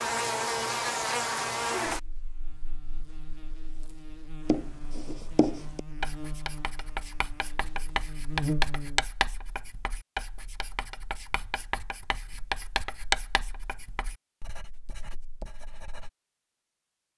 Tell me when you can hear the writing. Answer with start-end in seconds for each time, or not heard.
4.5-16.1.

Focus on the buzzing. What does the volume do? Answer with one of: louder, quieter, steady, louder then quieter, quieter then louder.
quieter then louder.